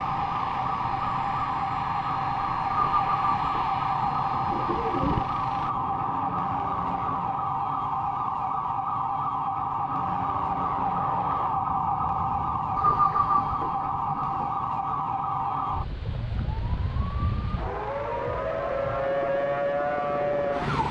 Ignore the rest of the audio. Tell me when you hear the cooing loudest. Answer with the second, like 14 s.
13 s.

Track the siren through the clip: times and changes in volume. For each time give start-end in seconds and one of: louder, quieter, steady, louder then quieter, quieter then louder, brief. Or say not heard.
0.0-20.8 steady.